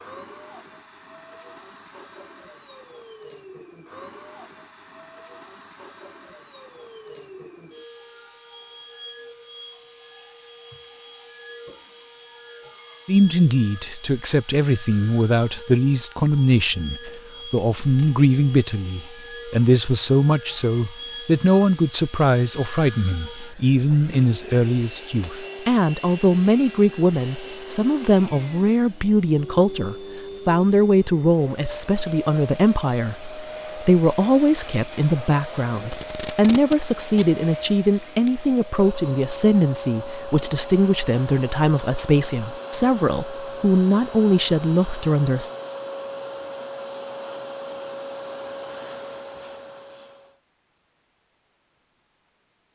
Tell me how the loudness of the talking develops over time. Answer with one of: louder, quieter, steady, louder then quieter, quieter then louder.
steady.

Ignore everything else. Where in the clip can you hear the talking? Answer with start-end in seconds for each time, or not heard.
13.1-45.5.